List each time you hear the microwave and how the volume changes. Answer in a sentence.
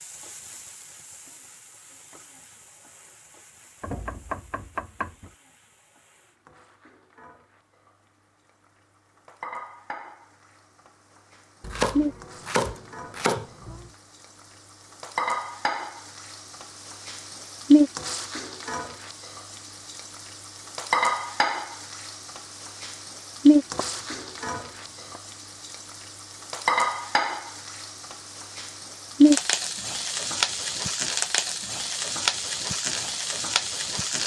The microwave can't be heard in this clip.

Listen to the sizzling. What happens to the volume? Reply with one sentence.
The loudness of the sizzling goes up.